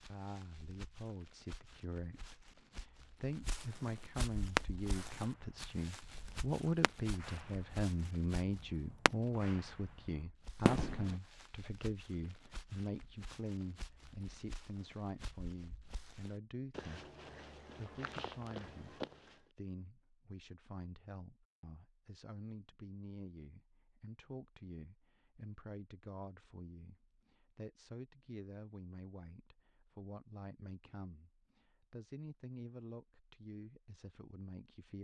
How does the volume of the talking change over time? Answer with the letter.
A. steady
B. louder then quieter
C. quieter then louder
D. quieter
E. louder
D.